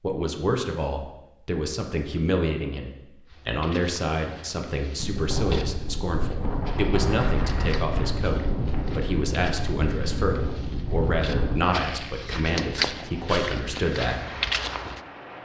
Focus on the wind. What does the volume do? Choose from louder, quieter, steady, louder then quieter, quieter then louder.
quieter.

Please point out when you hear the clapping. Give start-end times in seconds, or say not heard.
not heard.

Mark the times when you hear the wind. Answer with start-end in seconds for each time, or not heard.
5.0-15.4.